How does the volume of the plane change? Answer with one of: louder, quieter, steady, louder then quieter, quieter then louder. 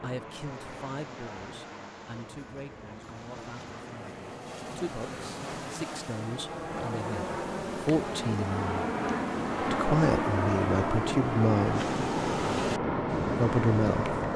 louder.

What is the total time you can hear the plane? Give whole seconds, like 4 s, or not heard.
14 s.